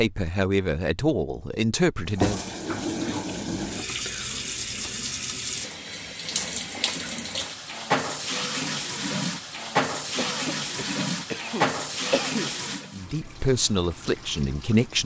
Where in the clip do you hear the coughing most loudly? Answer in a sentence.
The loudest moment of the coughing is at 12 seconds.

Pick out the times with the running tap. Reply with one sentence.
The running tap can be heard from 2.0 to 14.9 s.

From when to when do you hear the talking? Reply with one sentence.
You can hear the talking from 0.0 to 2.5 s and from 12.9 to 14.9 s.